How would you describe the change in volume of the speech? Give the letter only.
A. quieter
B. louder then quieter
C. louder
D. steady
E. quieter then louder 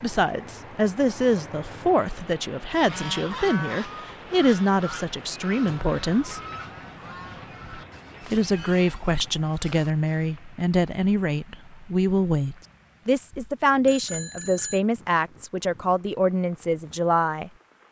D.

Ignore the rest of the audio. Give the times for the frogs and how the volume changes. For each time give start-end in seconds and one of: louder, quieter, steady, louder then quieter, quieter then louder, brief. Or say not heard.
not heard.